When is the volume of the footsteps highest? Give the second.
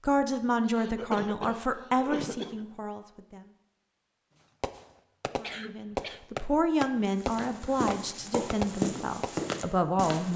9 s.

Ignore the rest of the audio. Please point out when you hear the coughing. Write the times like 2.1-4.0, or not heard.
0.7-2.6, 5.4-6.2.